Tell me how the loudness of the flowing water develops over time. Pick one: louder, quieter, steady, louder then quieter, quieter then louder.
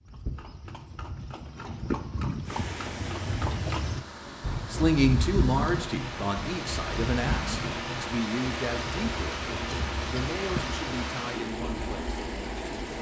louder.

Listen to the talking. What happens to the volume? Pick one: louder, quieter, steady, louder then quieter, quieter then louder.
quieter.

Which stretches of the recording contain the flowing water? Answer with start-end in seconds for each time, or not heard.
2.4-12.9.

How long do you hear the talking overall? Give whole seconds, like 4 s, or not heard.
8 s.